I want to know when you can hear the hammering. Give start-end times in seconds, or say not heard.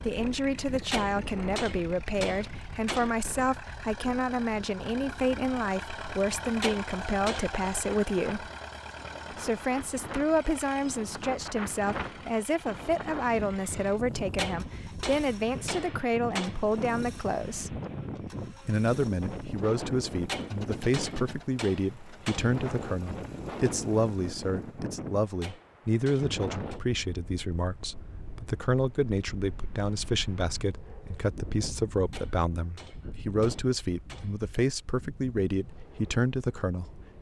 0.7-3.1, 6.4-7.6, 14.1-16.6, 20.1-22.6, 25.2-26.8, 31.9-34.4.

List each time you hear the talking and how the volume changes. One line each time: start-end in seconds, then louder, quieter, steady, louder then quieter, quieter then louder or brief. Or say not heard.
0.0-8.5 steady
9.3-17.8 steady
18.6-37.0 steady.